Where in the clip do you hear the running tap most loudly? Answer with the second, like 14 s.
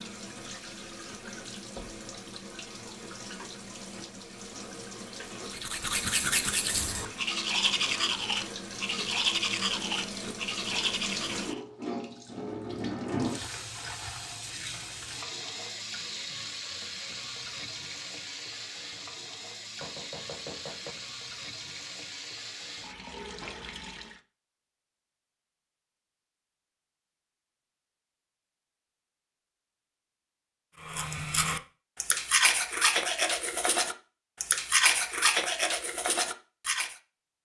13 s.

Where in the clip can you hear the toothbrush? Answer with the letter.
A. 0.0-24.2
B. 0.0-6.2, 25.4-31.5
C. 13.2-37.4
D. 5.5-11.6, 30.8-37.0
D.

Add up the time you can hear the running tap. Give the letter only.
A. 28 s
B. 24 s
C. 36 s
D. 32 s
B.